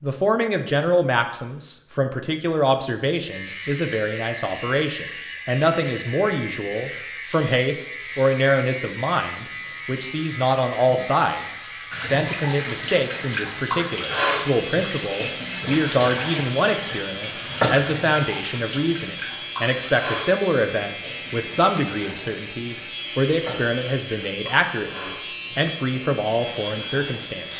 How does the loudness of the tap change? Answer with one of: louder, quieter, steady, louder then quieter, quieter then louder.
quieter.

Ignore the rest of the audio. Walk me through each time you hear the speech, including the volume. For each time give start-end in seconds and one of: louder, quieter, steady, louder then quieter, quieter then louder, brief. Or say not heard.
0.0-27.5 steady.